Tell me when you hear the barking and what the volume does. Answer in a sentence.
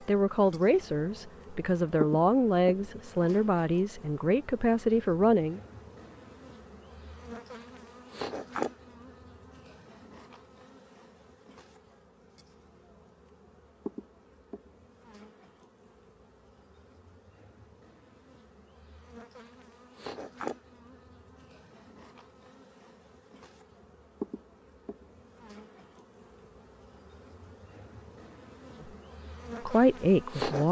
You can't hear the barking here.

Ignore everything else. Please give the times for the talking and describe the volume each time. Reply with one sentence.
You can hear the talking from 0.1 to 5.6 s, at a steady volume; and briefly from 29.6 to 30.6 s.